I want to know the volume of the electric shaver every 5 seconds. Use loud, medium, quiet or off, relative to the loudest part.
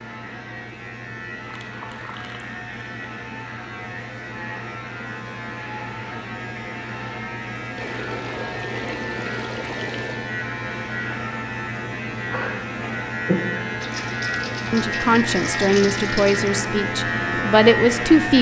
medium, medium, loud, loud.